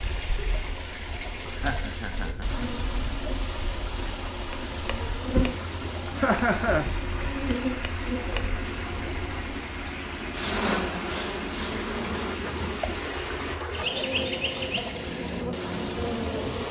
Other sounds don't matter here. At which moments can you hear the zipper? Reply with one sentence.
You can't hear the zipper here.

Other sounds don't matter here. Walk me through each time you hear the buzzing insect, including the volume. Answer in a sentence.
The buzzing insect can be heard from 0.0 to 16.6 s, getting louder.